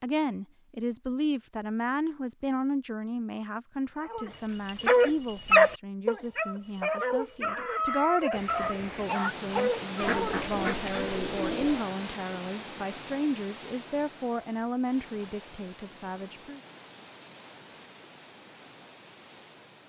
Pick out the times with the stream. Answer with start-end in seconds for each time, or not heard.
8.3-19.8.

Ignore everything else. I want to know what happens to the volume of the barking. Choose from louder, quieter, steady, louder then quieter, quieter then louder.
quieter.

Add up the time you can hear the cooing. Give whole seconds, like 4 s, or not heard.
2 s.